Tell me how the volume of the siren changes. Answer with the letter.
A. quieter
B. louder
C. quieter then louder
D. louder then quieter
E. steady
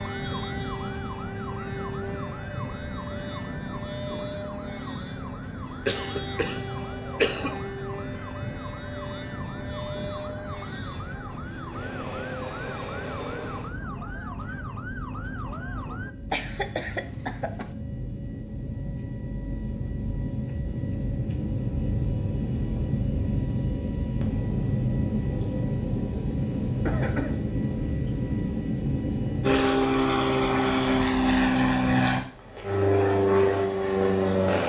E.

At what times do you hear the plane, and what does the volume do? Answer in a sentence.
You can hear the plane from 0.0 to 34.6 s, getting louder.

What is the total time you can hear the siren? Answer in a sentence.
The siren can be heard for 16 seconds in total.